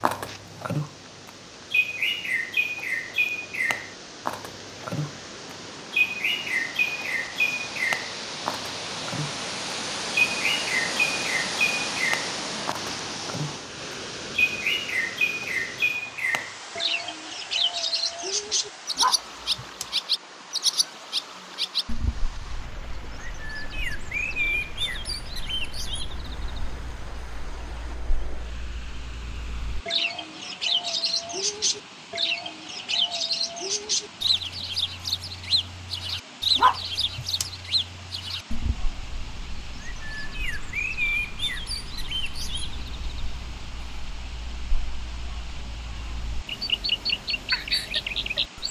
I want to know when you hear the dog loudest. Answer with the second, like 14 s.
37 s.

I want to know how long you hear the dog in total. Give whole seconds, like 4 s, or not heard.
2 s.